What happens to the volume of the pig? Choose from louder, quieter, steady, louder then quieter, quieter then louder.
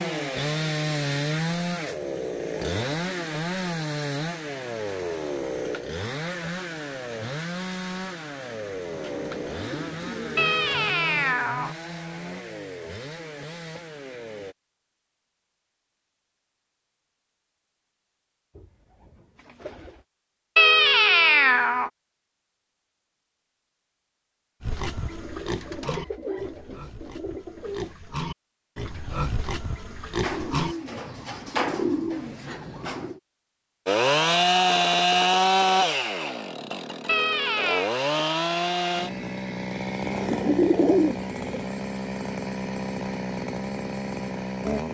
quieter then louder.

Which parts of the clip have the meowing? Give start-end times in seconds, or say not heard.
10.3-11.8, 20.6-21.9, 37.0-37.9.